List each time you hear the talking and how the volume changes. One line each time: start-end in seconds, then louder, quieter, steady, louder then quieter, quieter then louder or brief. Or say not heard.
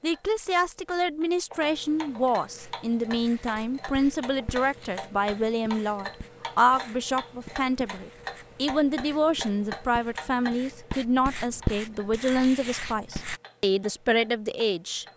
0.0-15.1 steady.